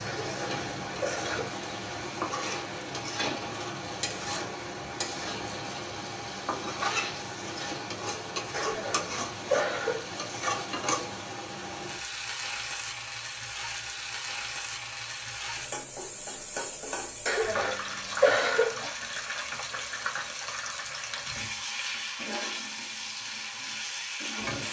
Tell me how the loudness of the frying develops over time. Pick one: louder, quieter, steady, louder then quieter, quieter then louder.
steady.